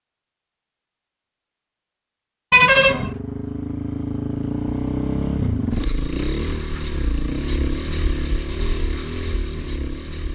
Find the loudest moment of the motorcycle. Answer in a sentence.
The volume of the motorcycle peaks at 5 seconds.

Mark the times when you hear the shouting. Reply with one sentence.
The shouting can't be heard in this clip.